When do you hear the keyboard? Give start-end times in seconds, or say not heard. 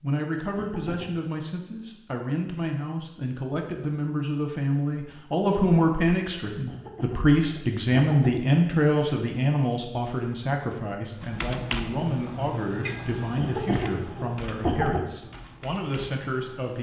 11.2-16.7.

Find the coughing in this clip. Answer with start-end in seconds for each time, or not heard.
0.6-1.1, 6.7-8.6, 13.3-15.0.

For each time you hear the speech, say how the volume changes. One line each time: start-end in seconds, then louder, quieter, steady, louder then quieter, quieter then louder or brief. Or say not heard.
0.0-16.7 louder then quieter.